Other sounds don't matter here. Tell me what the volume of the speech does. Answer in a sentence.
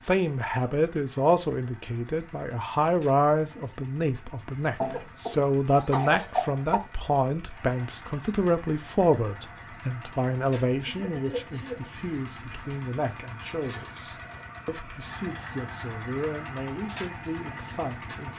The loudness of the speech goes down.